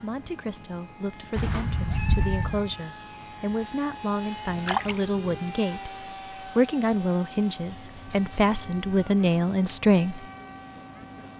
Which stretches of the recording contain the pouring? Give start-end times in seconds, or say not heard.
4.5-5.0.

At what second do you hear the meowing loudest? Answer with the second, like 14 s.
2 s.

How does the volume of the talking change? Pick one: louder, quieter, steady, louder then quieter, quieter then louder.
louder.